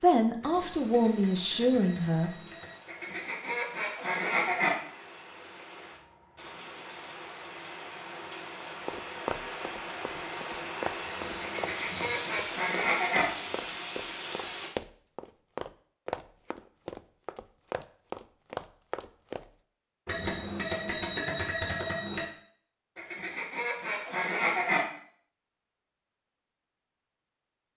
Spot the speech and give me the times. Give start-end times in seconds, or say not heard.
0.0-2.3.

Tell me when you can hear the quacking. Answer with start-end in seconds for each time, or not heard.
2.9-4.8, 11.4-13.2, 22.9-24.9.